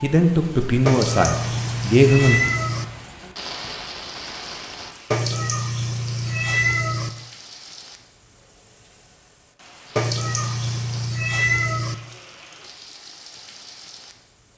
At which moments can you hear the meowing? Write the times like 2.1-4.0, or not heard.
0.8-2.9, 5.1-7.1, 9.9-11.9.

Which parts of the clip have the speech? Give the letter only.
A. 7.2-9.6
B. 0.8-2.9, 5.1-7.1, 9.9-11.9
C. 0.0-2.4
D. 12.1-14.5
C.